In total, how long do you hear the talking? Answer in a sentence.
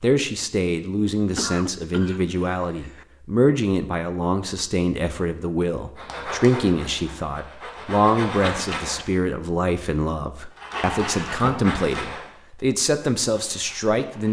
You can hear the talking for 14 seconds altogether.